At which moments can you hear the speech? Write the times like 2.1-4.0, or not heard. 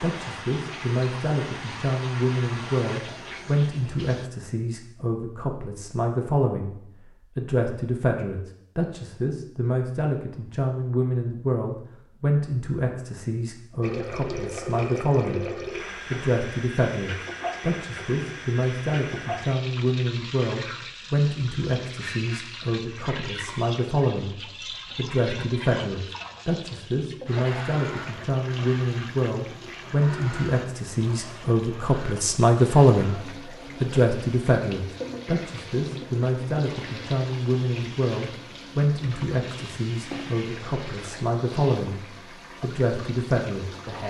0.0-6.8, 7.3-15.5, 16.1-24.4, 24.9-33.2, 33.8-42.0, 42.6-44.0.